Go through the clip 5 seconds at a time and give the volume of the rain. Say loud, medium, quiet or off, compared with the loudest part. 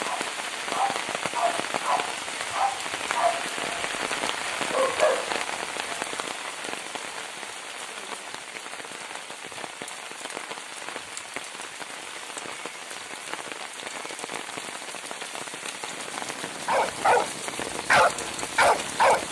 loud, loud, medium, loud.